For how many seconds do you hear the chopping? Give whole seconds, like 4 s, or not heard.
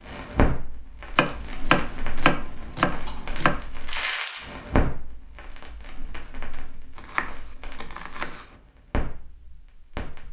4 s.